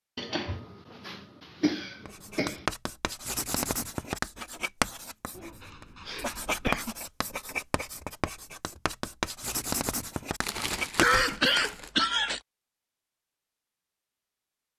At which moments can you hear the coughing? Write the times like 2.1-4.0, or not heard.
0.1-2.6, 5.3-7.0, 10.9-12.4.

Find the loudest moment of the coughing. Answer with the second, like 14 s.
11 s.